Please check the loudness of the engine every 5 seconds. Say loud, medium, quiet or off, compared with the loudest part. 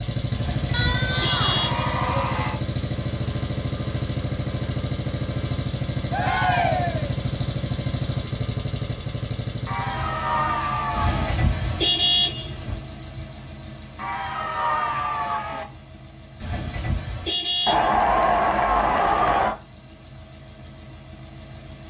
loud, loud, medium, quiet, quiet.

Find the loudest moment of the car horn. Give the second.
12 s.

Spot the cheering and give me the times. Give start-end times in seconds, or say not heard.
0.7-2.6, 6.1-7.2, 9.7-11.3, 13.9-15.7, 17.6-19.6.